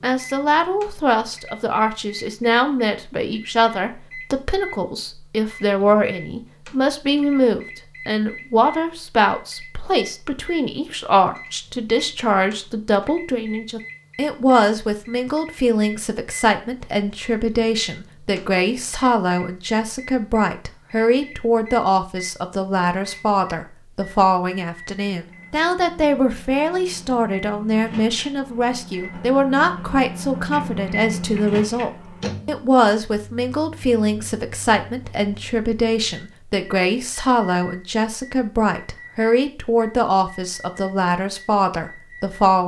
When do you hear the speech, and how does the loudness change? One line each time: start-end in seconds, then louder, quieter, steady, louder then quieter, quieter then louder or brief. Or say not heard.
0.0-42.6 steady.